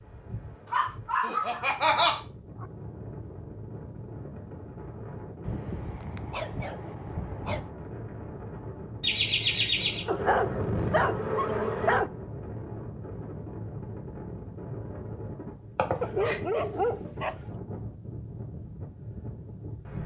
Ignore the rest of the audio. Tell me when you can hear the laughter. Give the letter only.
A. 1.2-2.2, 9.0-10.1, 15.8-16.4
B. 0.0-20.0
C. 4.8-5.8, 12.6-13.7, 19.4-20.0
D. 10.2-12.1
A.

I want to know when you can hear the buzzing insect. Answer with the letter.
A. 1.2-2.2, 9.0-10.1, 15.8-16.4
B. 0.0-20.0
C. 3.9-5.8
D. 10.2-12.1
D.